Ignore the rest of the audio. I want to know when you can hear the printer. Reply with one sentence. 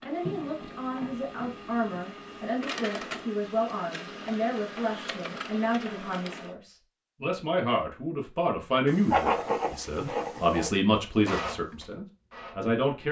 The printer can be heard from 0.0 to 6.5 s and from 10.9 to 12.8 s.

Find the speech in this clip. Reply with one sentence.
You can hear the speech from 0.1 to 13.0 s.